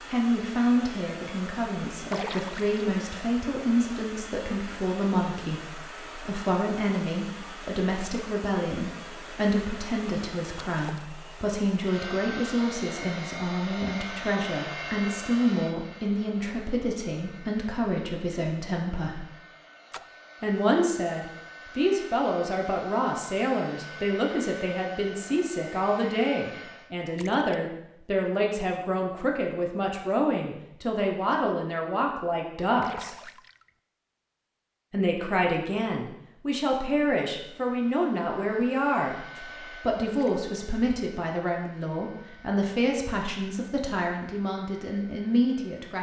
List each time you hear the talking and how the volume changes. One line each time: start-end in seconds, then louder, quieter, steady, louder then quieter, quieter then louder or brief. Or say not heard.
0.1-19.2 steady
20.4-33.1 steady
34.9-45.9 steady.